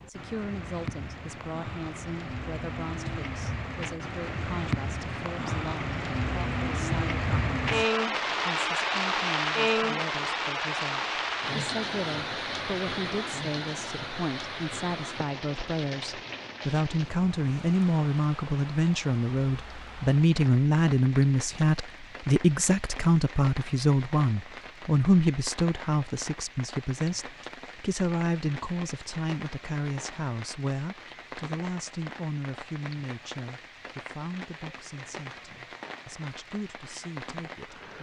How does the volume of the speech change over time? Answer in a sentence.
The loudness of the speech goes up, then down.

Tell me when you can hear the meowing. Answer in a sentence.
You can't hear the meowing here.